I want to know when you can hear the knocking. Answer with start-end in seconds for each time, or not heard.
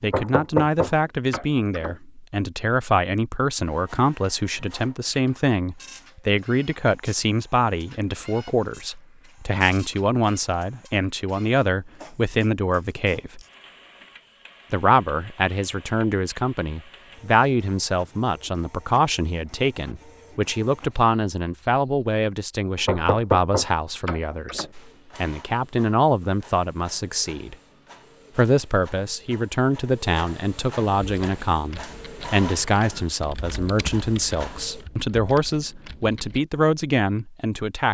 0.1-1.9, 22.8-24.7.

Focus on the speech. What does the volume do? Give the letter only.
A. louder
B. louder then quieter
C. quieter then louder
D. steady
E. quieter
D.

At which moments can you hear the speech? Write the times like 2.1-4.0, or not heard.
0.0-13.4, 14.7-27.6, 28.4-37.8.